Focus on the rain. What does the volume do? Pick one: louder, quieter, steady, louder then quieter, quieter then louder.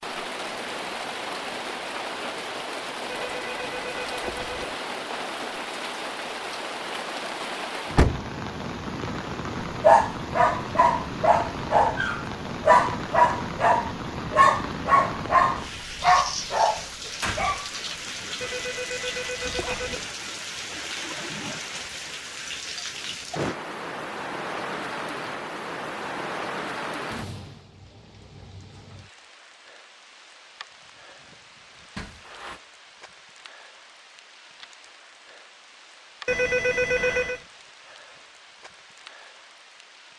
quieter.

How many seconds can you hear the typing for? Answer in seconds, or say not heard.
not heard.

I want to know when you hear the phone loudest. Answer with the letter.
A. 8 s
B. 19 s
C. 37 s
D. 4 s
C.